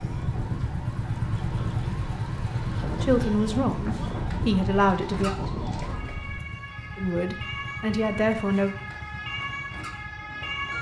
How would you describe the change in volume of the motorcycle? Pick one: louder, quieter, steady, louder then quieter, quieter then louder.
quieter.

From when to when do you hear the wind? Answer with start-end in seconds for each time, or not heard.
0.0-6.4.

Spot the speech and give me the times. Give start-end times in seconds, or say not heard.
3.0-5.3, 7.0-8.8.